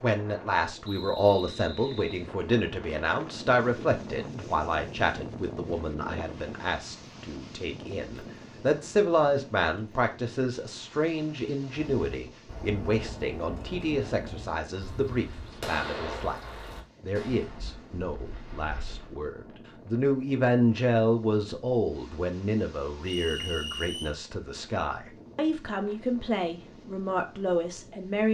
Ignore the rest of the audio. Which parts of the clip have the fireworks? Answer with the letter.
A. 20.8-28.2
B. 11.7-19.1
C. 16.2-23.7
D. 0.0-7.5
B.